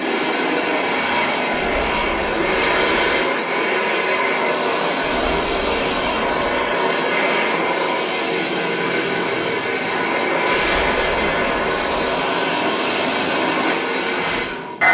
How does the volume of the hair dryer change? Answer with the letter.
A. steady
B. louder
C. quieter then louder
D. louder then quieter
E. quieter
A.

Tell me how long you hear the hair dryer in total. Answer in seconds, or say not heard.
15 s.